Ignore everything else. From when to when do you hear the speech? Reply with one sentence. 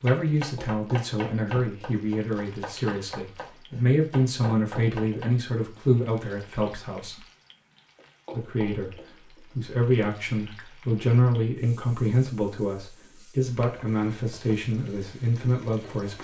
The speech can be heard from 0.0 to 7.2 s, from 8.3 to 8.9 s and from 9.5 to 16.1 s.